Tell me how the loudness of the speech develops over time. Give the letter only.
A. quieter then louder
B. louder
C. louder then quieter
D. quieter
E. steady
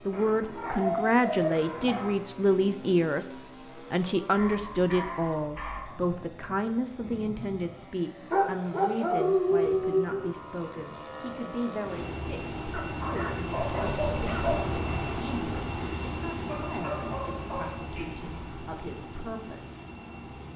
D.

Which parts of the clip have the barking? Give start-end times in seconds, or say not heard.
0.1-2.1, 4.3-6.0, 8.3-10.2, 12.7-14.8, 16.4-18.1.